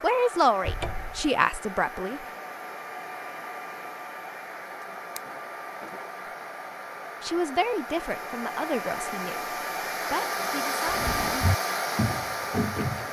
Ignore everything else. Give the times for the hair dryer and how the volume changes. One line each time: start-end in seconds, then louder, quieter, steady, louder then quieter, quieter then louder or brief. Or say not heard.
0.0-13.0 louder.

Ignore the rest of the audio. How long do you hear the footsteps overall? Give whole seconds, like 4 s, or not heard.
2 s.